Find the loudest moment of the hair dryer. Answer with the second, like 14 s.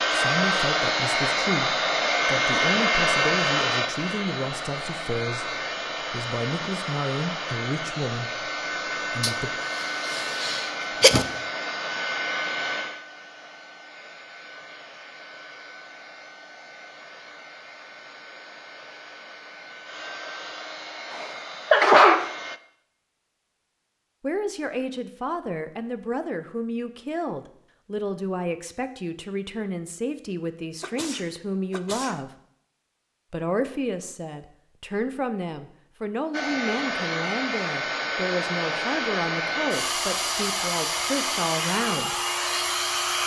3 s.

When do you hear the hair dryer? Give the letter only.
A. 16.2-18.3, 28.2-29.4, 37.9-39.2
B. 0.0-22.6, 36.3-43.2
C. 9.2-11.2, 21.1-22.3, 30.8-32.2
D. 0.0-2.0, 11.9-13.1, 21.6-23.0
B.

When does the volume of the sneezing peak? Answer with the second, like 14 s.
22 s.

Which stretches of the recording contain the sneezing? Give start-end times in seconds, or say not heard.
9.2-11.2, 21.1-22.3, 30.8-32.2.